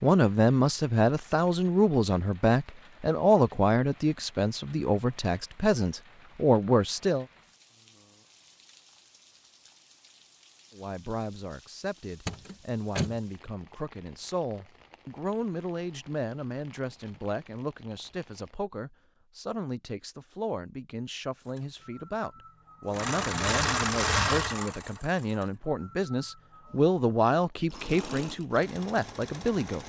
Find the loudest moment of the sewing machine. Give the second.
24 s.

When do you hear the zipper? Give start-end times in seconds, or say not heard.
not heard.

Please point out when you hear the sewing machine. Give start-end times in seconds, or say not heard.
21.4-29.8.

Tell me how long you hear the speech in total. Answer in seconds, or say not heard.
26 s.